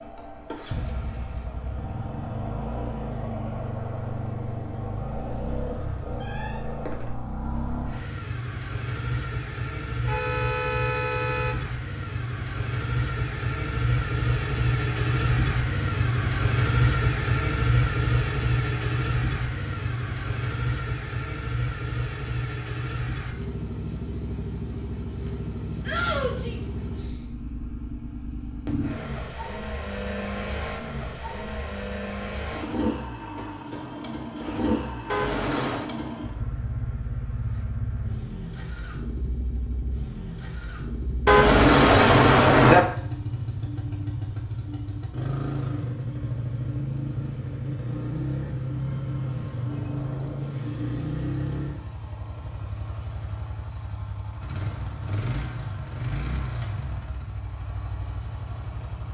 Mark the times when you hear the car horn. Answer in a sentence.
You can hear the car horn from 10.1 to 11.7 s, from 35.0 to 35.9 s and from 41.2 to 42.8 s.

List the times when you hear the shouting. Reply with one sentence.
The shouting can be heard from 25.9 to 26.6 s.